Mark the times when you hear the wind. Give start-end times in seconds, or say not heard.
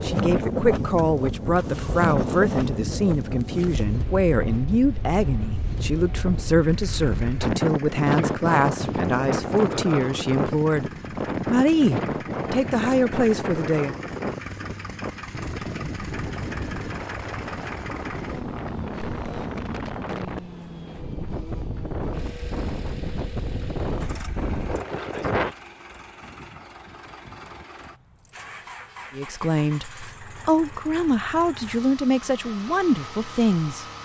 0.0-25.6.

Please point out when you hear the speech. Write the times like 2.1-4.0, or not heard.
0.0-14.0, 29.1-33.9.